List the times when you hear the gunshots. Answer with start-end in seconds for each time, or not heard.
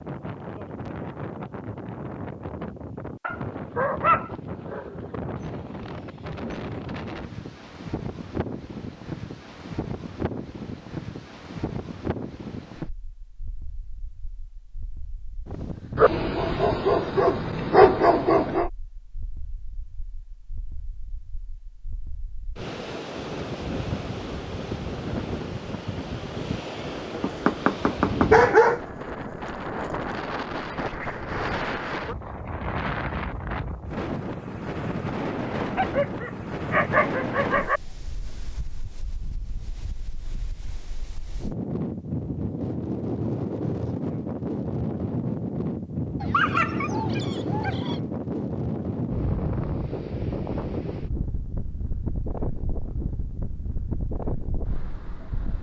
not heard.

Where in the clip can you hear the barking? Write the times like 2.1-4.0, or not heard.
3.2-5.1, 15.9-18.7, 27.1-28.8, 35.8-37.8, 46.2-48.0.